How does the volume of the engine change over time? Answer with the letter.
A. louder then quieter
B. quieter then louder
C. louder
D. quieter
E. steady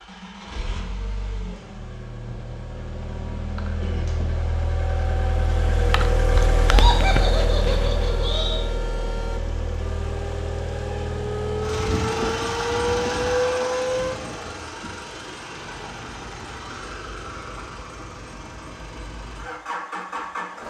A.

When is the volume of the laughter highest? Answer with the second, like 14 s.
7 s.